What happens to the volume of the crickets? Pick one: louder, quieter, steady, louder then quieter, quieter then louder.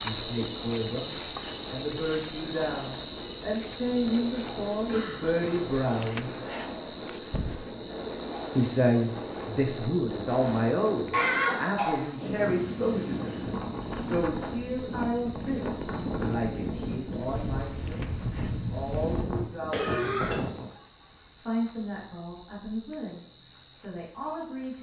quieter.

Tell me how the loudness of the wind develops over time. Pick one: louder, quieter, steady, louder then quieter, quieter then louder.
louder.